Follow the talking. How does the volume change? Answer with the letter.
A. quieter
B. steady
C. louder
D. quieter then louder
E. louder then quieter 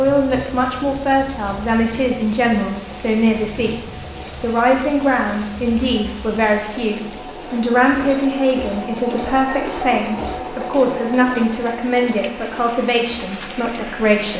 B.